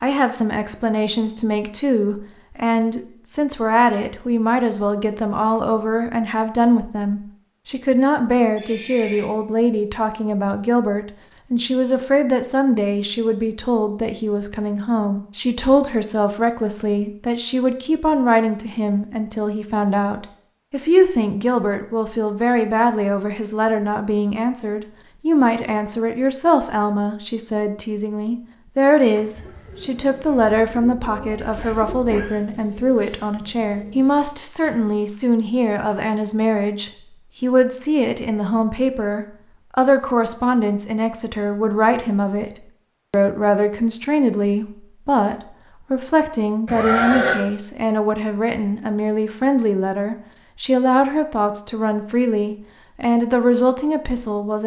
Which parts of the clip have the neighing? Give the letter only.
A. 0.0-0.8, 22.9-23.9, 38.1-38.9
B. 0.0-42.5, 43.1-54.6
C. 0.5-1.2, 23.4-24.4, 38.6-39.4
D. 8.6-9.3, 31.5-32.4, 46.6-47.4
D.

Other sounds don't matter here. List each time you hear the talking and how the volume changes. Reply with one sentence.
You can hear the talking from 0.0 to 42.5 s, at a steady volume; and from 43.1 to 54.6 s, at a steady volume.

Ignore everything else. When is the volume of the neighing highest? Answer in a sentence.
The loudest moment of the neighing is at 47 seconds.